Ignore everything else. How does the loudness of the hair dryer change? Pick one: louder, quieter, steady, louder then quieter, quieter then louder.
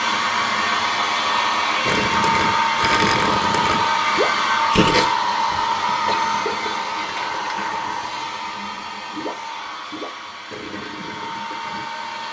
quieter.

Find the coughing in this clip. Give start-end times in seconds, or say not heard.
6.0-6.8.